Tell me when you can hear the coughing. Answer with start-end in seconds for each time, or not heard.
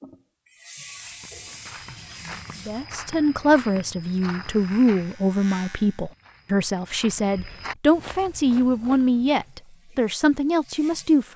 not heard.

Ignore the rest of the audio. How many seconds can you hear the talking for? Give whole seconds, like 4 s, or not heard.
9 s.